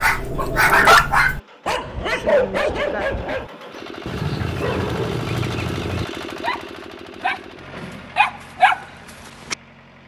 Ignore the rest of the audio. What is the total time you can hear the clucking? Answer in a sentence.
You can hear the clucking for 2 seconds altogether.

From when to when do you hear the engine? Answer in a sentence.
You can hear the engine from 0.1 to 10.0 s.